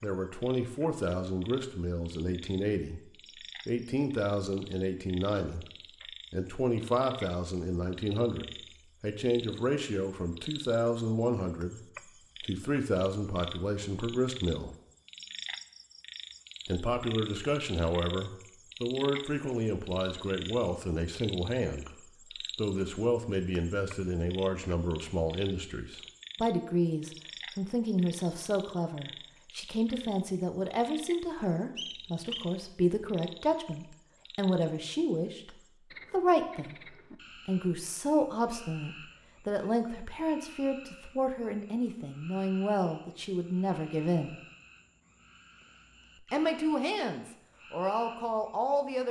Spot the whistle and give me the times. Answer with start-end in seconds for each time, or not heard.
31.8-32.5.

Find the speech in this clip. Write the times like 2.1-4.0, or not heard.
0.0-3.0, 3.6-5.7, 6.3-11.8, 12.4-14.8, 16.6-44.4, 46.2-49.0.